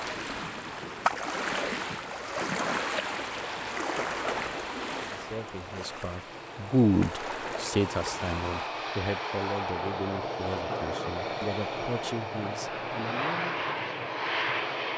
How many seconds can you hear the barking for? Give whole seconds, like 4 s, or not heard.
not heard.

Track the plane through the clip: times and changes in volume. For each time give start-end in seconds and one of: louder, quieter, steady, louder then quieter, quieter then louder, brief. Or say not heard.
3.3-14.9 louder.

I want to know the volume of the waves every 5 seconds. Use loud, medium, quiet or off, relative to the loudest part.
loud, medium, off.